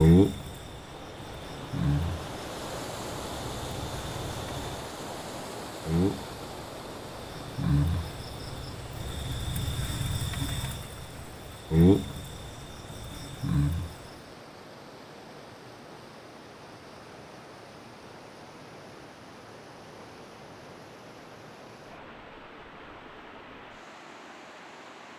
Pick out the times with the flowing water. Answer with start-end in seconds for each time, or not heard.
0.1-25.1.